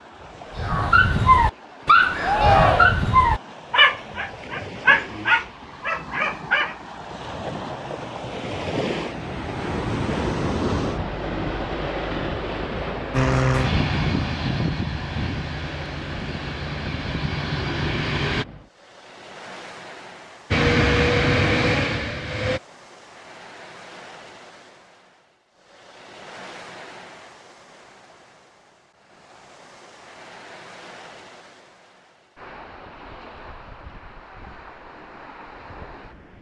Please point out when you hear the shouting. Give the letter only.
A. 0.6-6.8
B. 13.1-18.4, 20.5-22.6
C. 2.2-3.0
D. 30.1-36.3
C.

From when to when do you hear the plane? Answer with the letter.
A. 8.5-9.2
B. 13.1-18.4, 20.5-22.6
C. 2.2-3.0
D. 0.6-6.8
B.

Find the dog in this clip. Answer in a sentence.
You can hear the dog from 0.6 to 6.8 s.